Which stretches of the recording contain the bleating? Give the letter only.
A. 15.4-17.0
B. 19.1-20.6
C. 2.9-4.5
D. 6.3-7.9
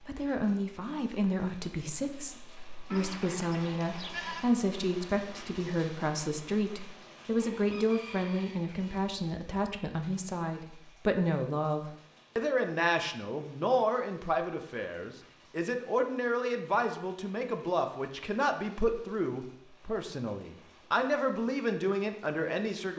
C.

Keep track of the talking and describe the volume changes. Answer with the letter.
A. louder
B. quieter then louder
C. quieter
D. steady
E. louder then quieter
D.